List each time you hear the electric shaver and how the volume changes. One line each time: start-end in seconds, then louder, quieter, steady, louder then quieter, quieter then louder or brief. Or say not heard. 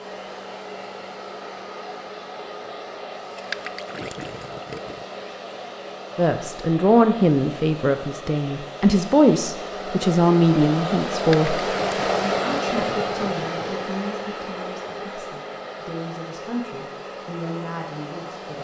not heard.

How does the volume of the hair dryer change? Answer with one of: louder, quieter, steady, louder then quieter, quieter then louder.
louder then quieter.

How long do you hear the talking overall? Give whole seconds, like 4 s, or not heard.
12 s.